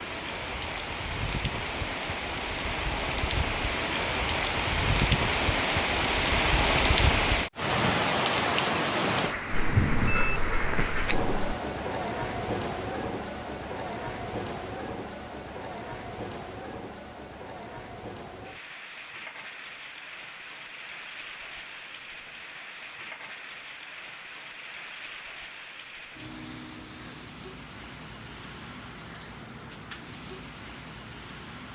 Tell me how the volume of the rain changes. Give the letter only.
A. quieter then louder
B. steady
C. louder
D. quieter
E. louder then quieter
D.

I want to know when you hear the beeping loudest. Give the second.
10 s.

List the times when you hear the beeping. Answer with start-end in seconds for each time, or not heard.
9.5-11.6.